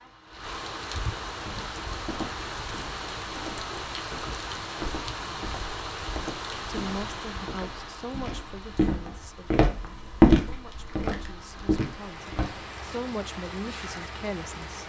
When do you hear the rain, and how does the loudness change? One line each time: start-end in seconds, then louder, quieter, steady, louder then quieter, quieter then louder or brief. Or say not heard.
0.0-14.8 quieter then louder.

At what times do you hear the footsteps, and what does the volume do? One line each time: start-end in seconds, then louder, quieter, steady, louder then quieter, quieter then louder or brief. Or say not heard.
1.4-12.6 louder.